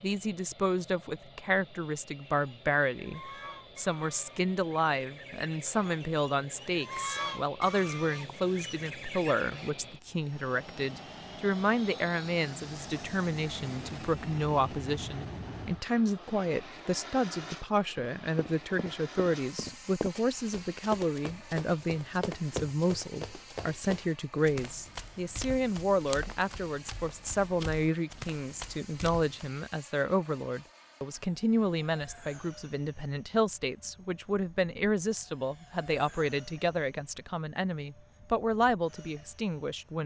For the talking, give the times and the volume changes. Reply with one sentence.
You can hear the talking from 0.0 to 40.0 s, at a steady volume.